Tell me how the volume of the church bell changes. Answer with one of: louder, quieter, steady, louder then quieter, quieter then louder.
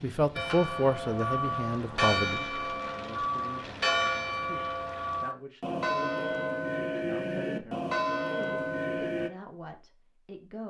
steady.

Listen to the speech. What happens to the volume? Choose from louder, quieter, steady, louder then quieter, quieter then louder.
quieter.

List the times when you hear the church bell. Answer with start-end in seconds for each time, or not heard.
0.3-9.3.